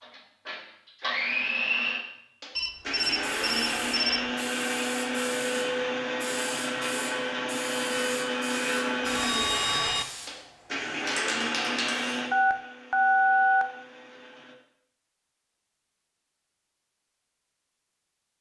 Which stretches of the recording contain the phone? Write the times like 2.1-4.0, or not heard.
2.5-4.3, 9.1-10.1, 12.3-13.7.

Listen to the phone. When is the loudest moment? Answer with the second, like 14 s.
13 s.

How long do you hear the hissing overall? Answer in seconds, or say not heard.
9 s.